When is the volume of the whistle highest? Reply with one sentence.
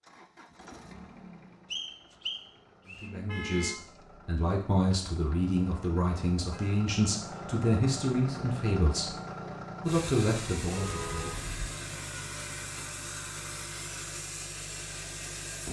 The loudest moment of the whistle is at 2 seconds.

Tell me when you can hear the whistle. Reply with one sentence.
You can hear the whistle from 1.7 to 3.1 s.